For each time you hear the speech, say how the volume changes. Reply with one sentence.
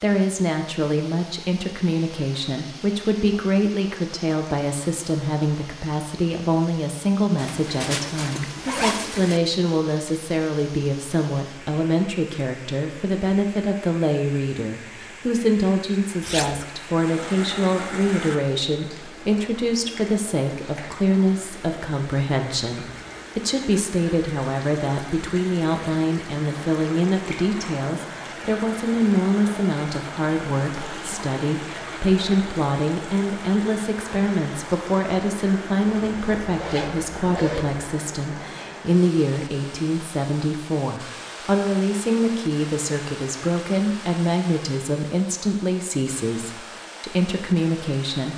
You can hear the speech from 0.0 to 48.3 s, at a steady volume.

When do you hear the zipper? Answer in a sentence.
The zipper can be heard from 7.3 to 9.4 s, from 16.2 to 16.6 s and from 35.9 to 37.9 s.